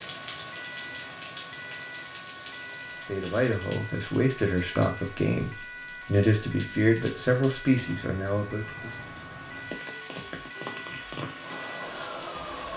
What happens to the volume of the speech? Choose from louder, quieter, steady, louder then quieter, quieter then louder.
steady.